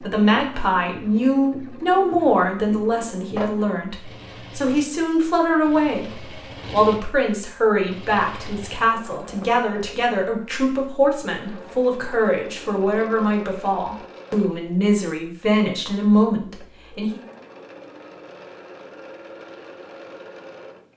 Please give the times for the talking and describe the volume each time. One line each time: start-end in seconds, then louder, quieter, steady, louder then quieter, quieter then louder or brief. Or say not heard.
0.0-17.2 steady.